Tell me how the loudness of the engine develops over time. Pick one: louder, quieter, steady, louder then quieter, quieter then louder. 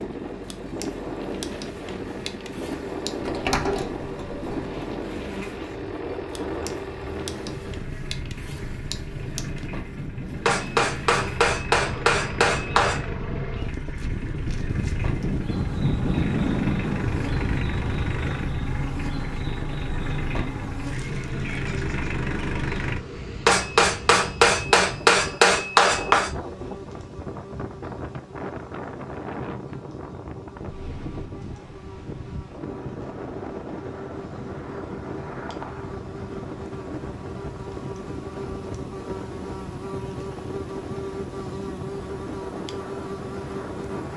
louder.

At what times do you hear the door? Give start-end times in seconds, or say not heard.
3.2-4.7.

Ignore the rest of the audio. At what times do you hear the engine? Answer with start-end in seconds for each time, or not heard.
0.0-23.0.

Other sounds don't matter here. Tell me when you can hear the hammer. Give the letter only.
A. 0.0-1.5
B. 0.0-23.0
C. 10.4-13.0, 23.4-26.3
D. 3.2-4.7
C.